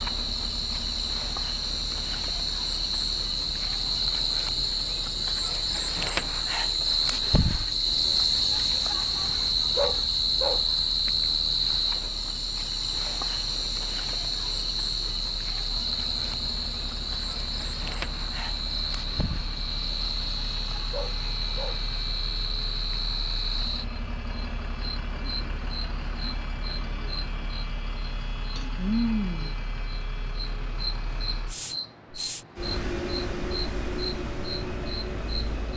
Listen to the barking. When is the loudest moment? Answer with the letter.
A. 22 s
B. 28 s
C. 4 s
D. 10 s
D.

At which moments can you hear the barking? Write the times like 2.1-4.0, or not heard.
9.8-10.6, 20.9-21.8.